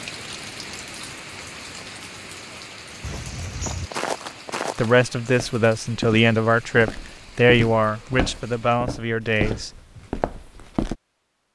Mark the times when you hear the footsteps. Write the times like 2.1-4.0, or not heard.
3.0-10.9.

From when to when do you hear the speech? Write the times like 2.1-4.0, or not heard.
4.8-9.8.